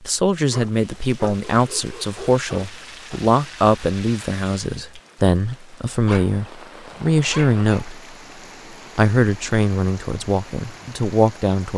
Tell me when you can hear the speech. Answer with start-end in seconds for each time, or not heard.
0.0-8.0, 8.9-11.7.